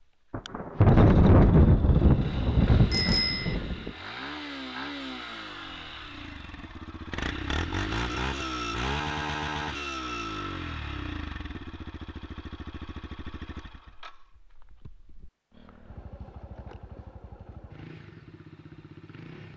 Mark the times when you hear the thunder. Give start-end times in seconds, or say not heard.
0.3-3.9.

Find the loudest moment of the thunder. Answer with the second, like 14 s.
1 s.